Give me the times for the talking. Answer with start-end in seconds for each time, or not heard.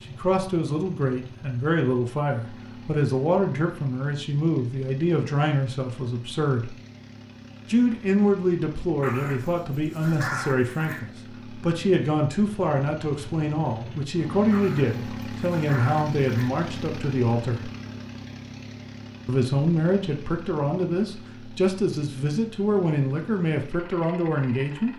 0.0-6.8, 7.7-17.7, 19.2-24.9.